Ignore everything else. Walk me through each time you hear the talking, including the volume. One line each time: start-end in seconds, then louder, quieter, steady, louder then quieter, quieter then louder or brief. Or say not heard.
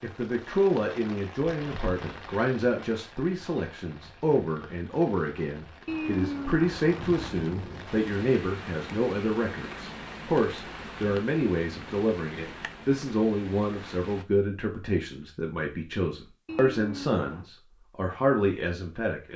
0.0-19.3 steady.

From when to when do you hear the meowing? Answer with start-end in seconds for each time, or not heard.
5.8-7.9, 16.4-17.5.